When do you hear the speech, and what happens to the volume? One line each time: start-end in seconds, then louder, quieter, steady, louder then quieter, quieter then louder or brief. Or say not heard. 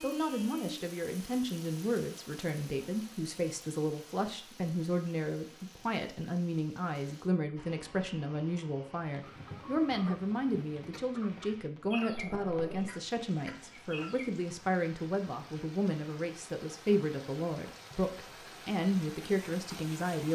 0.0-20.3 steady.